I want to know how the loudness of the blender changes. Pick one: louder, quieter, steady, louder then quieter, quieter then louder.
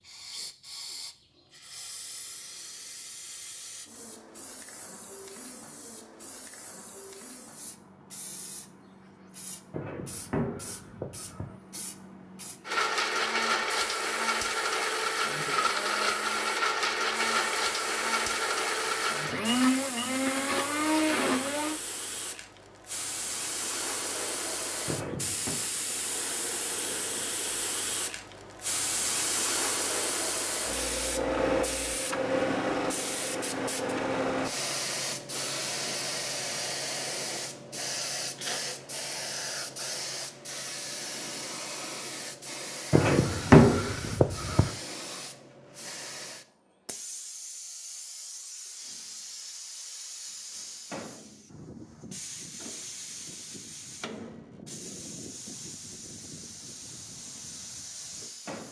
steady.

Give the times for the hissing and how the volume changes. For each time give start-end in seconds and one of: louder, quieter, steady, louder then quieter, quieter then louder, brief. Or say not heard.
0.0-58.6 louder then quieter.